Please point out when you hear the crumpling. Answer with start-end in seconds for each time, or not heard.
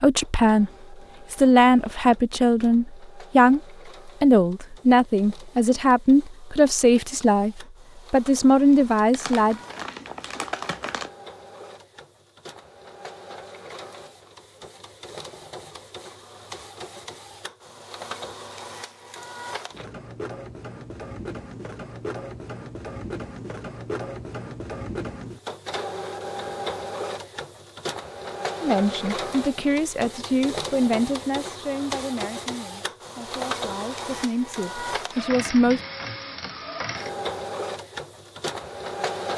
9.1-11.1.